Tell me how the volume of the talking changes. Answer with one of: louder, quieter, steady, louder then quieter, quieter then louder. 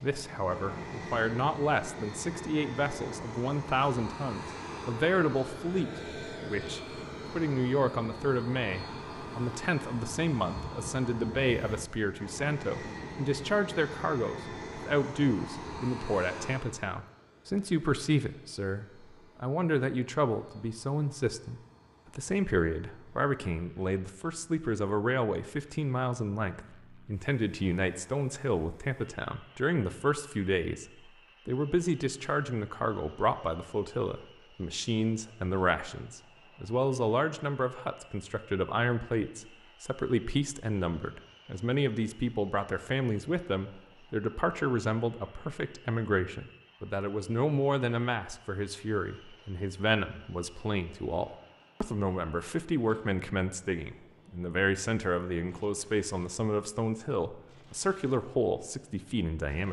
steady.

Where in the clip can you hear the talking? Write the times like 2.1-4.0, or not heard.
0.0-59.6.